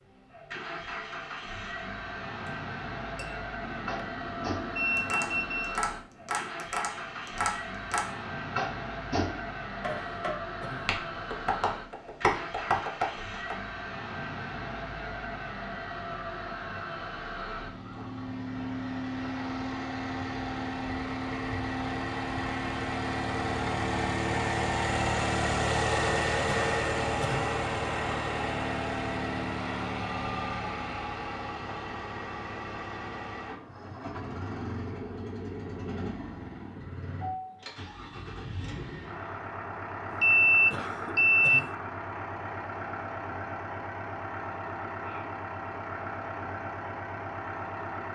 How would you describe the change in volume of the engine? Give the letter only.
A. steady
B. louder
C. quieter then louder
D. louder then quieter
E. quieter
D.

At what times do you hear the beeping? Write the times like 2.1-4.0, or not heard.
3.6-5.8, 40.1-41.6.